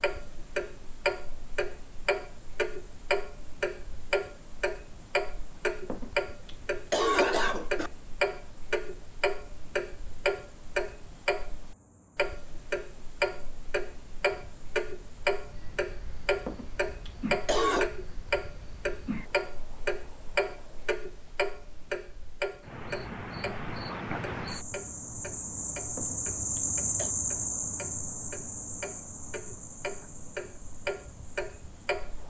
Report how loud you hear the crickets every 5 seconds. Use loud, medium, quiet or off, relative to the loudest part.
quiet, quiet, quiet, quiet, medium, loud, quiet.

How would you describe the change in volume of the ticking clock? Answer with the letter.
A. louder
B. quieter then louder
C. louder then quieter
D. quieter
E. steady
D.